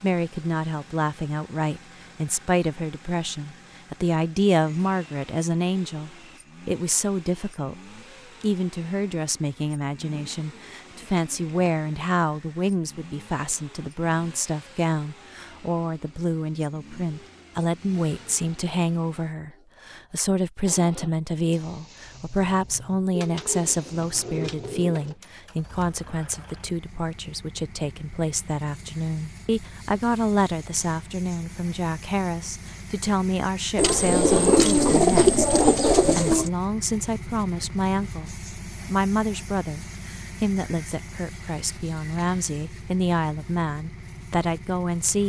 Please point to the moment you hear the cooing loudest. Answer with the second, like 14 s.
35 s.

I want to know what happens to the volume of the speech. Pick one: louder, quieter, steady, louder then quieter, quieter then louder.
steady.